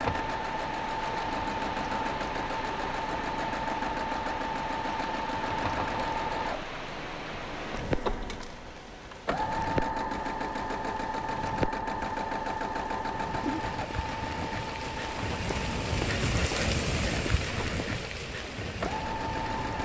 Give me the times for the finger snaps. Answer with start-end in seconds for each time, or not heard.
not heard.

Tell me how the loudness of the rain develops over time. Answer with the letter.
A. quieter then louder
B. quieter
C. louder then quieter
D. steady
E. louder
E.